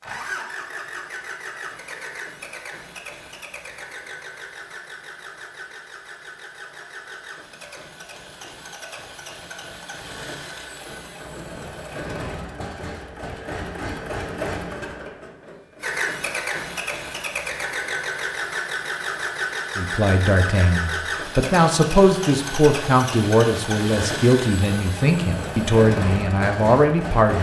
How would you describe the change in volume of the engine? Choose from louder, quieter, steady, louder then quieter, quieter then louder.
louder.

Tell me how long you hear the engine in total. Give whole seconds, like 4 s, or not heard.
27 s.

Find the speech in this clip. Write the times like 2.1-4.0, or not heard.
19.8-27.3.